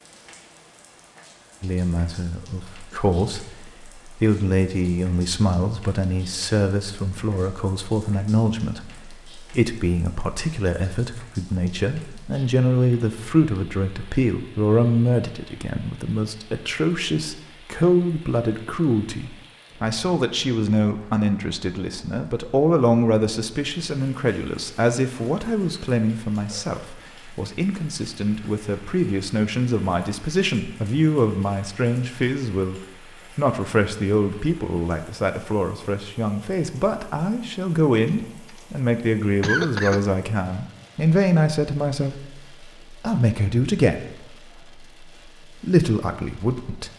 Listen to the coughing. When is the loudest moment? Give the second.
40 s.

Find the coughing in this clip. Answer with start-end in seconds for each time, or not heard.
38.0-38.6, 39.4-40.0.